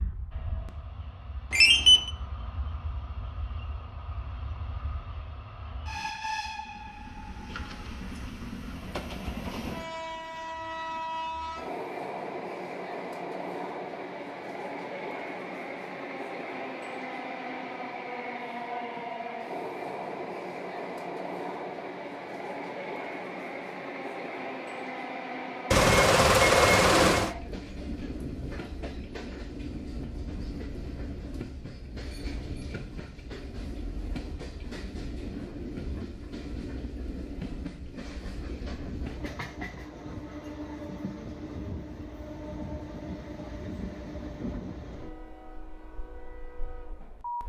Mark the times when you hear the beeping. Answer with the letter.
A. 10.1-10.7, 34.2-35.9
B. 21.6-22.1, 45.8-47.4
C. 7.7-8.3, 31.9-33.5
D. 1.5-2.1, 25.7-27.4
D.